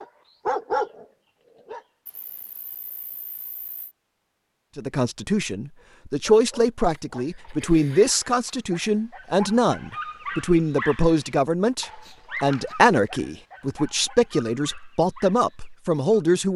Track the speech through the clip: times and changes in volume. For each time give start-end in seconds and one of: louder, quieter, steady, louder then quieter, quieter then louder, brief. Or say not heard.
4.8-16.5 steady.